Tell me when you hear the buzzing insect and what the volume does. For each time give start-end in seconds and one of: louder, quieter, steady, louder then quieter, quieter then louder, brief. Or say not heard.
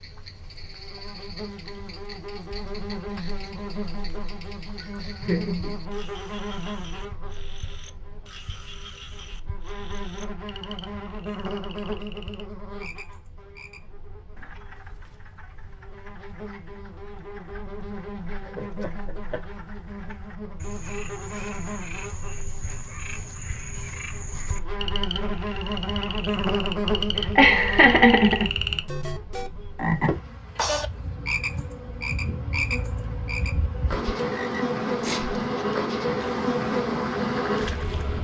0.0-38.1 louder.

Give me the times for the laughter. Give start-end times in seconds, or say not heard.
4.8-5.8, 18.4-19.4, 27.4-28.5.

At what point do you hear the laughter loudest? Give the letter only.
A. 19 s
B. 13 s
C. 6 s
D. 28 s
D.